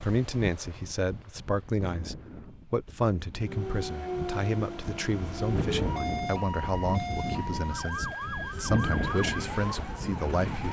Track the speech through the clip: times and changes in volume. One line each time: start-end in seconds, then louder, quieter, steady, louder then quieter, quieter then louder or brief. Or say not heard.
0.0-10.6 steady.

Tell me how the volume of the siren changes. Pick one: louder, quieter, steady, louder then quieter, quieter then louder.
steady.